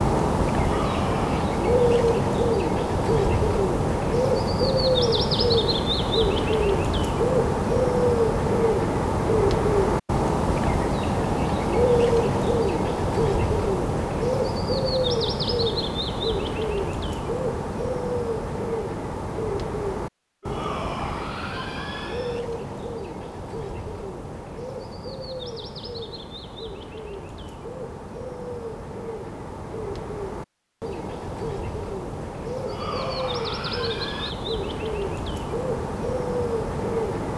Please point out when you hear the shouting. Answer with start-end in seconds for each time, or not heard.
0.6-1.4, 20.4-22.4, 32.6-34.4.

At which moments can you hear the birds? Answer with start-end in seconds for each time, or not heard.
0.0-37.3.